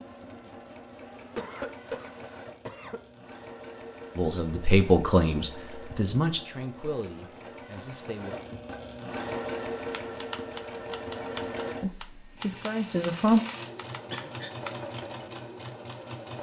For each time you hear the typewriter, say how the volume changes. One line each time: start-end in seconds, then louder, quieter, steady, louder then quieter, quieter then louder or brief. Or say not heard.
9.3-15.1 quieter then louder.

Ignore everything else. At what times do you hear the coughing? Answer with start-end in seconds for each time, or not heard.
1.4-3.0, 14.1-14.6.